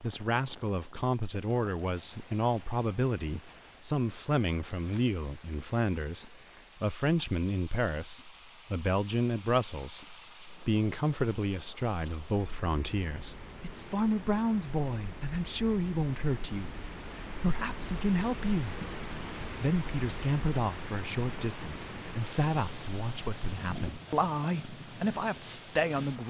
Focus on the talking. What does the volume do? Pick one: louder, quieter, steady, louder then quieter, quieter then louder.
steady.